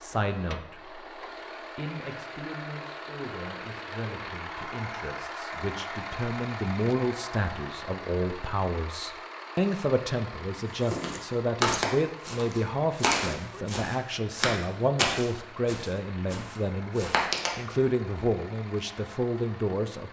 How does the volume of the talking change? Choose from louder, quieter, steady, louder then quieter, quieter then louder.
louder.